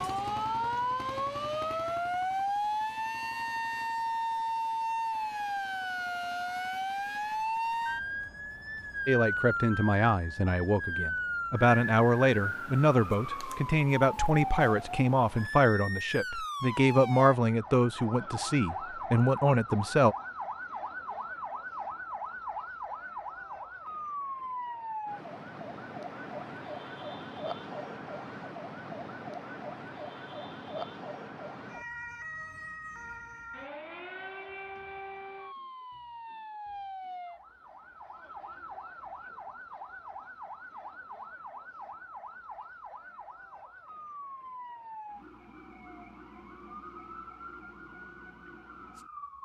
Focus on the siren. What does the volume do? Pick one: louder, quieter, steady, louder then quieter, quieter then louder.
quieter.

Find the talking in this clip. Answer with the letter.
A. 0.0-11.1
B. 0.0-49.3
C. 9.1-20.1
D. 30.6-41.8
C.